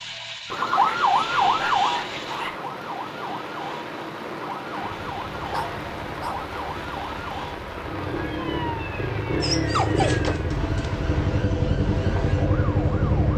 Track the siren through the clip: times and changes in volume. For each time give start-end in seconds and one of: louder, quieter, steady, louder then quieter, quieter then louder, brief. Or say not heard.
0.0-13.3 quieter.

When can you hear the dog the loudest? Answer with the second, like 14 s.
10 s.